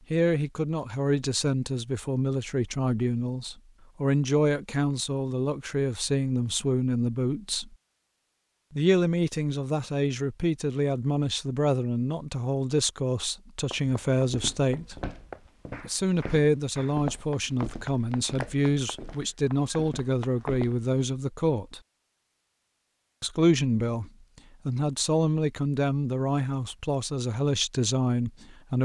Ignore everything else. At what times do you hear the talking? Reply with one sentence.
You can hear the talking from 0.1 to 7.8 s, from 8.7 to 15.0 s, from 15.8 to 21.8 s and from 23.2 to 28.7 s.